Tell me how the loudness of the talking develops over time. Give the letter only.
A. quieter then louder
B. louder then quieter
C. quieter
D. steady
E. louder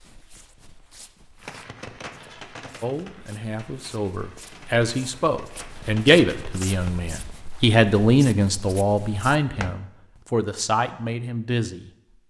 B.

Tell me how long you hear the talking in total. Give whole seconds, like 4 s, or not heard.
9 s.